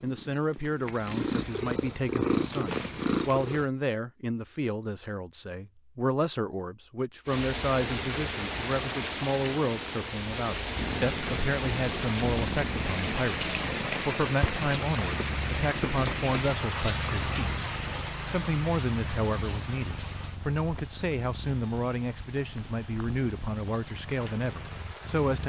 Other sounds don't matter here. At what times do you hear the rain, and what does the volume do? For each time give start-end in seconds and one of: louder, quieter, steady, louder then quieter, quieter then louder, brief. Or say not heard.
7.2-25.4 quieter.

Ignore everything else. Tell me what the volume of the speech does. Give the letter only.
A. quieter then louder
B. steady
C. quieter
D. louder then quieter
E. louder
B.